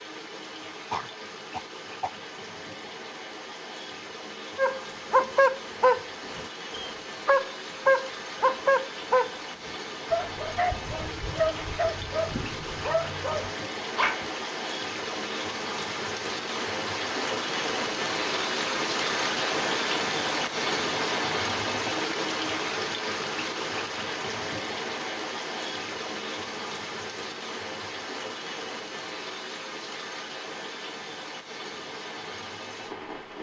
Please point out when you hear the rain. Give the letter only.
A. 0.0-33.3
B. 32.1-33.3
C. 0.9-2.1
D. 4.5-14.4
A.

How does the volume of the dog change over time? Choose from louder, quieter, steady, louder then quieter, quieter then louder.
quieter.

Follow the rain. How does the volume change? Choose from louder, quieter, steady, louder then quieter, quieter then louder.
louder then quieter.